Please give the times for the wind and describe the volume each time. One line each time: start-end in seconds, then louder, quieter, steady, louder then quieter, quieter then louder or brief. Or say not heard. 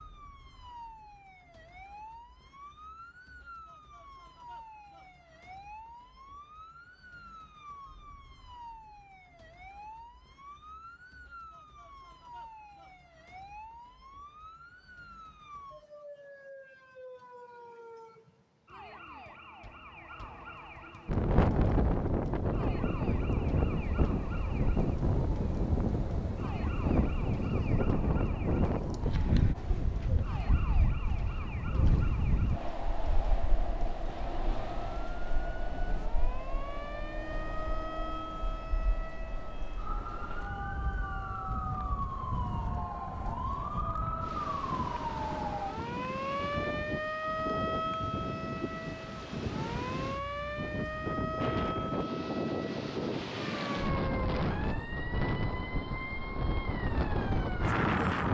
21.1-58.3 quieter then louder.